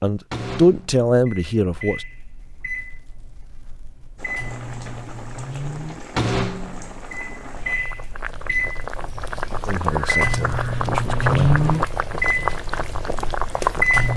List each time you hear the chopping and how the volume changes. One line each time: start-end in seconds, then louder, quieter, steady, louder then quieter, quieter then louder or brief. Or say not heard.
not heard.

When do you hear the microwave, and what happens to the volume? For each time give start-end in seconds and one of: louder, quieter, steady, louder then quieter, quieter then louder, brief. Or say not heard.
0.1-14.1 louder.